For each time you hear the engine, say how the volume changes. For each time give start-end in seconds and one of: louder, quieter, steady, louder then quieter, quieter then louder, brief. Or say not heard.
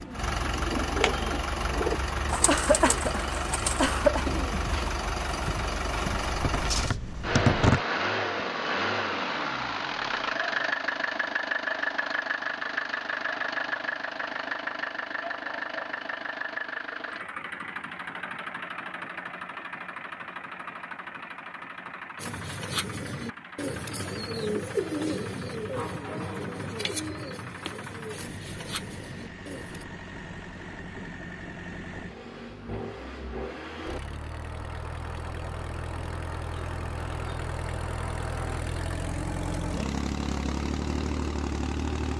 0.0-42.1 quieter then louder.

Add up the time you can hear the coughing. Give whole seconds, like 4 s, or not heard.
2 s.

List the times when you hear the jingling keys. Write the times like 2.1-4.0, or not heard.
6.0-7.8.